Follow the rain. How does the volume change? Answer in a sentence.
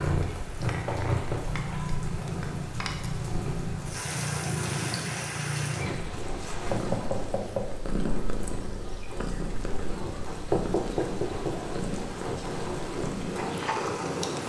The volume of the rain goes up.